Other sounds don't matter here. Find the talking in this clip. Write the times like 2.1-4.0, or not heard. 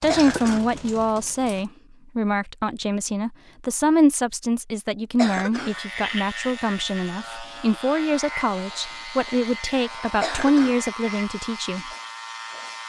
0.0-11.8.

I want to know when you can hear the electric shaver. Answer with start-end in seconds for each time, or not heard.
5.5-12.8.